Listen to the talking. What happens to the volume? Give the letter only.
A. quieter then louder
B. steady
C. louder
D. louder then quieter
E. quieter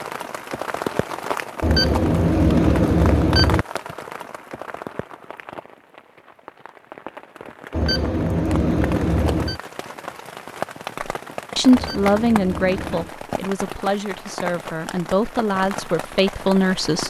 A.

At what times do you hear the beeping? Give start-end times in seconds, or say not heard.
1.6-3.6, 7.7-9.6, 11.7-13.1.